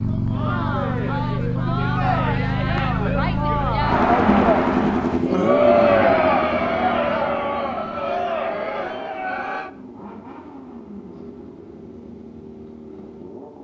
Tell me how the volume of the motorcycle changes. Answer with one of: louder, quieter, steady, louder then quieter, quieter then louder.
quieter.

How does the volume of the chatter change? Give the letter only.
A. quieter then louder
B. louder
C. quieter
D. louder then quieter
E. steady
D.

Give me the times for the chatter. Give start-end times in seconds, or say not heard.
0.1-9.7.